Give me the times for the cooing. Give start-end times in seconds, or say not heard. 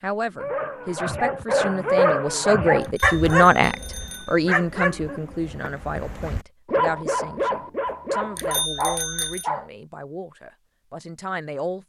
not heard.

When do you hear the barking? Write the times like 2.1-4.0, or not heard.
0.3-9.7.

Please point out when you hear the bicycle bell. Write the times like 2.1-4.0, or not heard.
2.8-4.4, 8.3-9.4.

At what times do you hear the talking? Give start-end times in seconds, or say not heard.
0.0-11.8.